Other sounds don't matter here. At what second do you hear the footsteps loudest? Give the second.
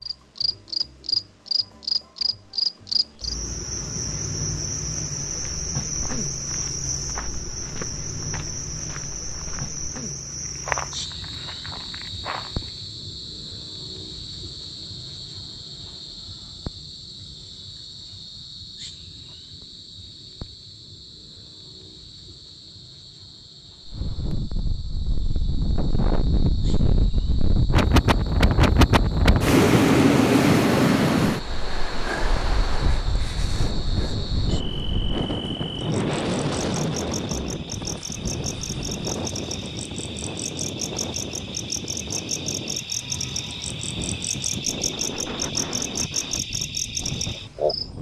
11 s.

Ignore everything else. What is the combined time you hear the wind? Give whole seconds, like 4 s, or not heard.
24 s.